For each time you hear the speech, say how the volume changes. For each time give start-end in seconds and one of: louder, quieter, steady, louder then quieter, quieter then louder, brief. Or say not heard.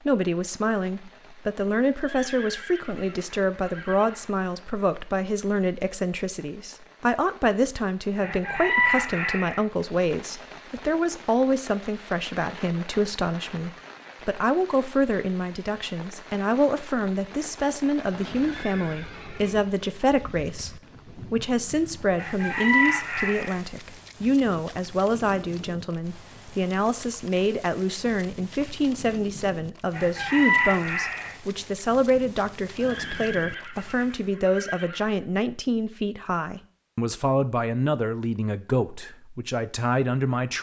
0.1-40.5 steady.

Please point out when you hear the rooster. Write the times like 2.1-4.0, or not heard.
8.2-9.7, 22.1-23.6, 29.9-31.4.